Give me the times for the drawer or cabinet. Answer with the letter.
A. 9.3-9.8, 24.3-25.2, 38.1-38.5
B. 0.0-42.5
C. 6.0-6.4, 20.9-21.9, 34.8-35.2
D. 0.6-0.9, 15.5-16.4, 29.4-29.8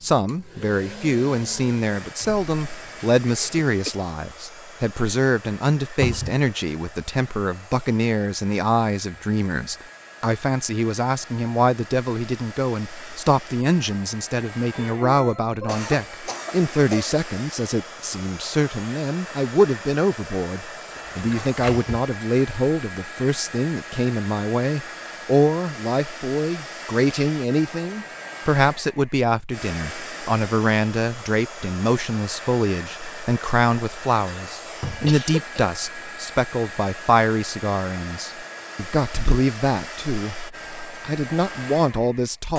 C.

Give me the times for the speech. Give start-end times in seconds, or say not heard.
0.0-42.5.